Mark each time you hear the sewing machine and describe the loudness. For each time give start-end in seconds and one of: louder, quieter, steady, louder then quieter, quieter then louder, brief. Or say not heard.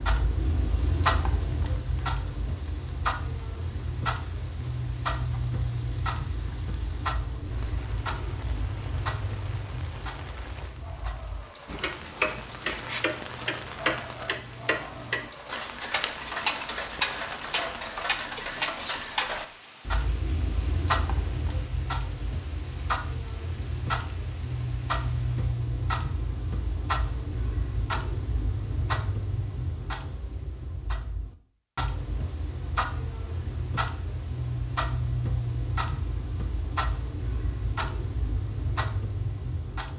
not heard.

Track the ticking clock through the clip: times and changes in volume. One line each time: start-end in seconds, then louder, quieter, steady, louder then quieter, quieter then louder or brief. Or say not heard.
0.0-39.9 steady.